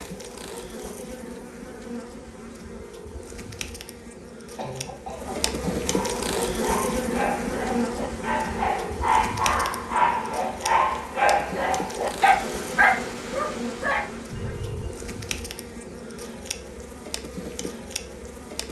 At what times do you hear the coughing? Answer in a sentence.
The coughing can be heard from 4.5 to 5.9 s and from 14.3 to 14.9 s.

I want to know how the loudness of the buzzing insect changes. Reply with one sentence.
The volume of the buzzing insect goes up, then down.